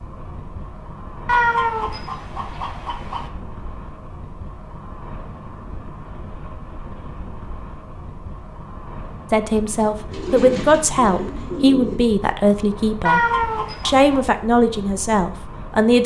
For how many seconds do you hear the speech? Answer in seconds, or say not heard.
7 s.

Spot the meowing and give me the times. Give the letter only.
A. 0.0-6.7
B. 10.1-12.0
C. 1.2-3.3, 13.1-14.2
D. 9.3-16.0
C.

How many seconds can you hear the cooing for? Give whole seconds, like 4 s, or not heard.
2 s.